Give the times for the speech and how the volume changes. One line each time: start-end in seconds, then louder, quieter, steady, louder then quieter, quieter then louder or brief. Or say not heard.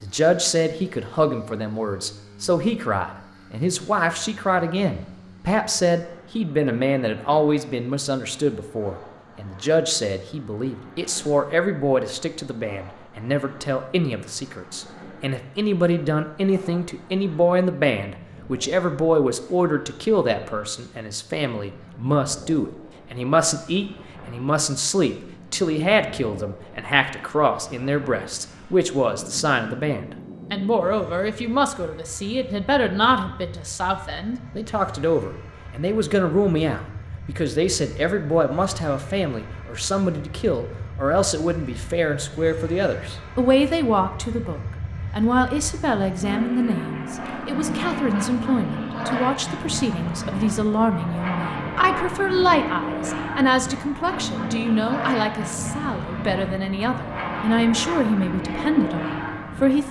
0.0-59.8 steady.